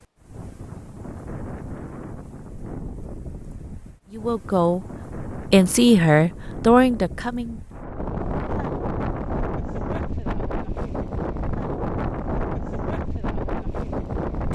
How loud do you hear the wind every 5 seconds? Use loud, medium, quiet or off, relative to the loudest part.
medium, loud, loud.